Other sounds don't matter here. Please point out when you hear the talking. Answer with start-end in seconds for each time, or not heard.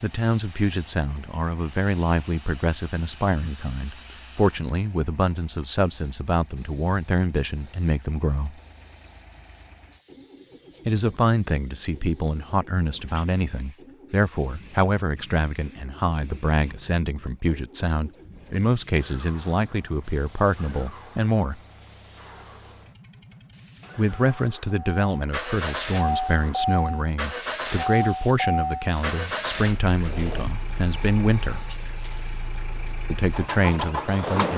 0.0-8.6, 10.8-21.6, 23.9-31.7, 33.1-34.5.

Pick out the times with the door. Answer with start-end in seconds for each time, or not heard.
not heard.